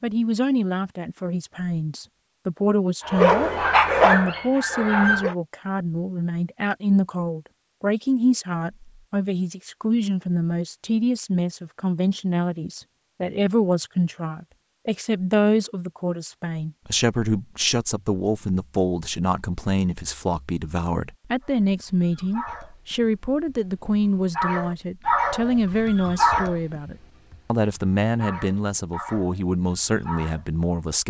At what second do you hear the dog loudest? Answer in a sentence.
The volume of the dog peaks at 4 seconds.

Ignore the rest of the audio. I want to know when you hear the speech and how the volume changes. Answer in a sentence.
You can hear the speech from 0.0 to 31.0 s, at a steady volume.